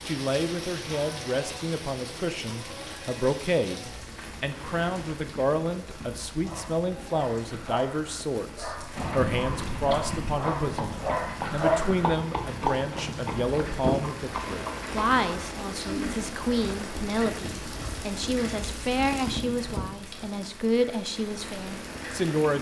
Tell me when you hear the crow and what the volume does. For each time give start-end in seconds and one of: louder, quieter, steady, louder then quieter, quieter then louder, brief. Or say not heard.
not heard.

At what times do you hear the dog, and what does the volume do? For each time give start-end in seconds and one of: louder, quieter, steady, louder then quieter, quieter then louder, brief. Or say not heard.
6.2-12.2 louder.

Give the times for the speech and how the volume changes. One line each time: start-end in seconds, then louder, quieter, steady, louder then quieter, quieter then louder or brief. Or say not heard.
0.1-22.5 steady.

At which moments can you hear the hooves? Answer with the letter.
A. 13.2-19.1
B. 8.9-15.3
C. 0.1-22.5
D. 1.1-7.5
B.